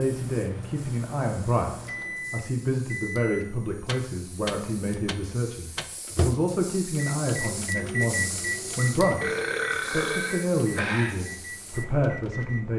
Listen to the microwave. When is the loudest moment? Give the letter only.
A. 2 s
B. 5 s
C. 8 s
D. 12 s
C.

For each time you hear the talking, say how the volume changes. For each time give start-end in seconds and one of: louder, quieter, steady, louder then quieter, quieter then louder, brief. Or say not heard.
0.0-12.7 steady.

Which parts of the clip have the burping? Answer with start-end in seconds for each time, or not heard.
9.2-11.2.